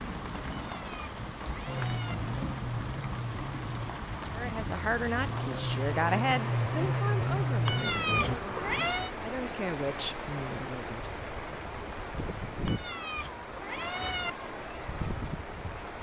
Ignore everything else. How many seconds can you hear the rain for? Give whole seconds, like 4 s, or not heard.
16 s.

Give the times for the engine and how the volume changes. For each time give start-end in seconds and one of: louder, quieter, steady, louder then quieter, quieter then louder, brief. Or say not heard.
1.6-8.3 louder.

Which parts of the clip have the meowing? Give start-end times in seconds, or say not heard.
0.5-2.1, 7.7-9.2, 12.7-14.3.